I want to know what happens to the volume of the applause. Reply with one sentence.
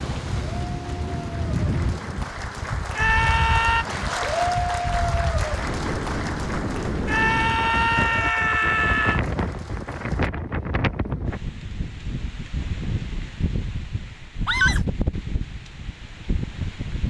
The loudness of the applause goes up, then down.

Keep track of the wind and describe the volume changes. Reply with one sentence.
The loudness of the wind stays about the same.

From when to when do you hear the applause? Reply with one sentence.
You can hear the applause from 0.1 to 10.3 s.